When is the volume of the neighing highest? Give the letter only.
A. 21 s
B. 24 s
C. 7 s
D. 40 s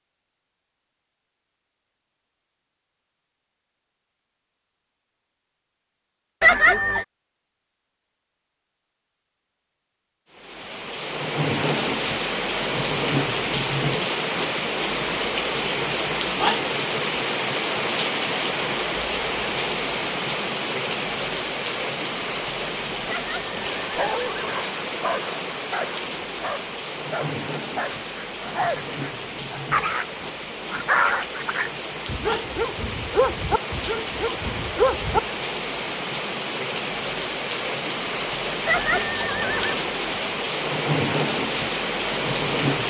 C.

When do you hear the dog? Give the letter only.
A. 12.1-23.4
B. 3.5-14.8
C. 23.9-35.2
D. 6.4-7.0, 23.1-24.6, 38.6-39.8
C.